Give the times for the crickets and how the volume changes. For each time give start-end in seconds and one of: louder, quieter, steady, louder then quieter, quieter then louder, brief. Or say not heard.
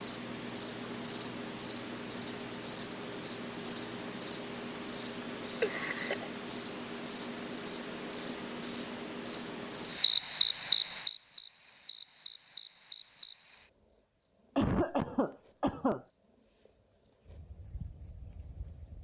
0.0-19.0 quieter.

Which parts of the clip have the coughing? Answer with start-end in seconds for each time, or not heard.
5.3-6.3, 14.6-16.1.